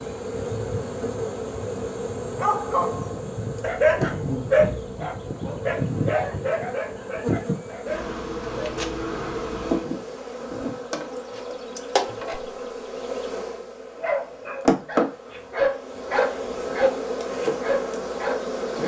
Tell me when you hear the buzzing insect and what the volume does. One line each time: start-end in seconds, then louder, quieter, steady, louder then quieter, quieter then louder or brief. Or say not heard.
0.0-18.8 steady.